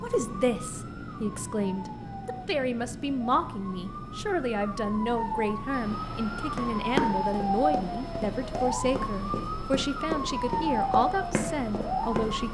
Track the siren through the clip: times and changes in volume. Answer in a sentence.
The siren can be heard from 0.1 to 12.4 s, getting louder.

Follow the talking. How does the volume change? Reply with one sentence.
The loudness of the talking stays about the same.